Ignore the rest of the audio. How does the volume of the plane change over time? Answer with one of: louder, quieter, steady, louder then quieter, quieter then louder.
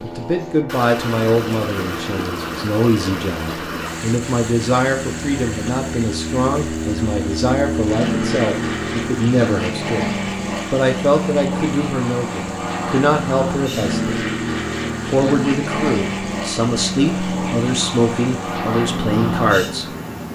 louder.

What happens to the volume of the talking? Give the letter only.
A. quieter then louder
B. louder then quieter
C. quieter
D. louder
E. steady
E.